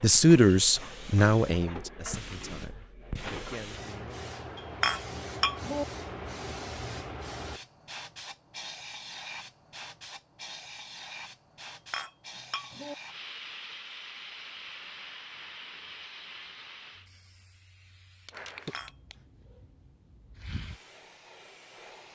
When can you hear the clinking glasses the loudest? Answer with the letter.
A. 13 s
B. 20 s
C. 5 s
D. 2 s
C.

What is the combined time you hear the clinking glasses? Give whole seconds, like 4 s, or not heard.
3 s.